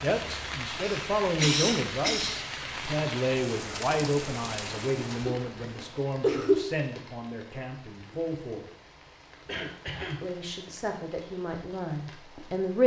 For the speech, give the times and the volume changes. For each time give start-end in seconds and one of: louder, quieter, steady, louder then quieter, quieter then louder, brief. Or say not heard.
0.0-8.7 quieter
10.2-12.8 brief.